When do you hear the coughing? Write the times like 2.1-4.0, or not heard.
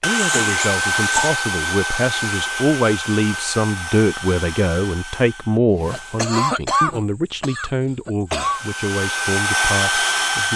0.1-1.4, 5.9-8.6.